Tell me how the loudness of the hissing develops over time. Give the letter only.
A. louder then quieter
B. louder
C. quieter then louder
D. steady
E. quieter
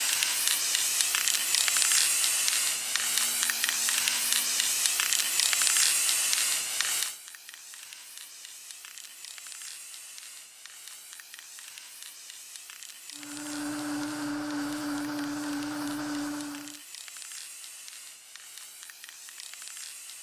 E.